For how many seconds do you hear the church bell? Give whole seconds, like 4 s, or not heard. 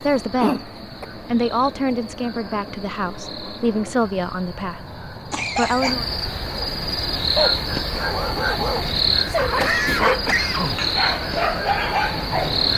not heard.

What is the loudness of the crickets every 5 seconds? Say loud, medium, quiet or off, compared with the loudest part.
quiet, loud, loud.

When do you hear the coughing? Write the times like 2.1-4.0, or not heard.
0.4-1.1, 5.3-6.0, 9.3-10.8.